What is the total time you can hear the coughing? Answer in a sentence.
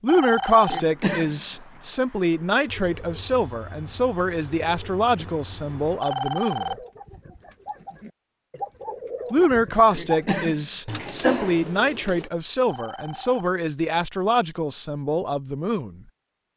The coughing can be heard for 3 seconds in total.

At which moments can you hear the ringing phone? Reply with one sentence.
The ringing phone can be heard from 0.1 to 0.8 s, from 6.0 to 6.8 s and from 12.7 to 13.4 s.